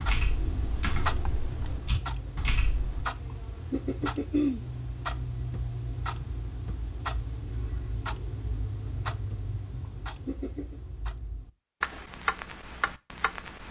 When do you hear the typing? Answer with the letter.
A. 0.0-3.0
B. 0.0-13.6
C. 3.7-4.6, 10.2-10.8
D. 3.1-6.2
A.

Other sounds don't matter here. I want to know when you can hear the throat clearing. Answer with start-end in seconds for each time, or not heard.
3.7-4.6, 10.2-10.8.